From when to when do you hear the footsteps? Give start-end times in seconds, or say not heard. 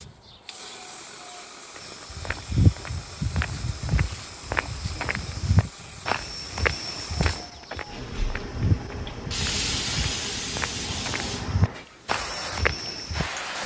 1.8-13.3.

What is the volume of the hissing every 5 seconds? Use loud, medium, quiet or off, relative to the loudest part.
medium, loud, loud.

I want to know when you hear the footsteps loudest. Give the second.
3 s.